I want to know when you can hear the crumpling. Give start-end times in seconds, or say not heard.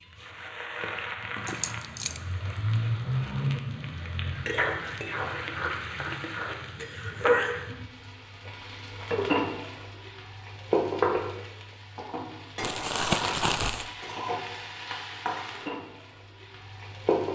1.4-2.8, 12.6-13.9.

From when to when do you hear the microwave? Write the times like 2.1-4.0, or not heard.
not heard.